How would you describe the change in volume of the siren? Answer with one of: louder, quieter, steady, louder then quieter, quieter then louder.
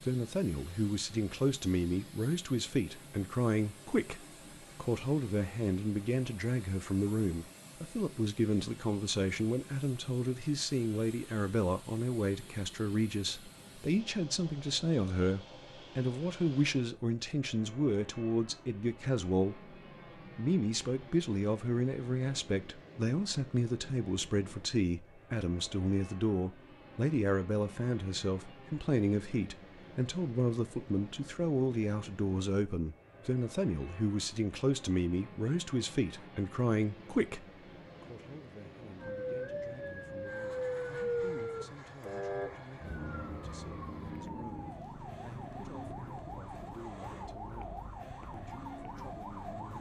quieter.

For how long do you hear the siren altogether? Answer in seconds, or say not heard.
11 s.